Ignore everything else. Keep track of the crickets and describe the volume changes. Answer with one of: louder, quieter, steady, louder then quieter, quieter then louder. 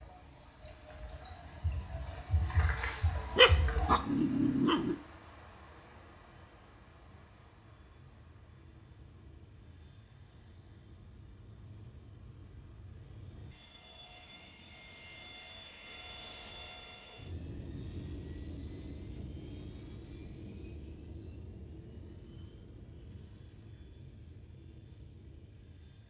quieter.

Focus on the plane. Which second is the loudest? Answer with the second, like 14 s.
18 s.